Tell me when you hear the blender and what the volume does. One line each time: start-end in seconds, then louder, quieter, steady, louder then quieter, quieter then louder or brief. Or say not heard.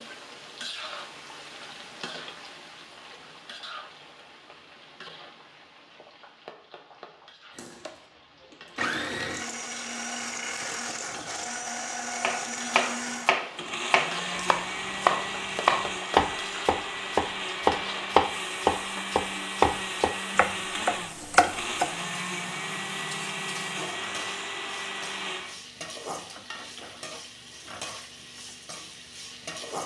7.5-25.6 steady.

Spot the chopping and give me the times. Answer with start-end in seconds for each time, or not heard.
12.2-21.9.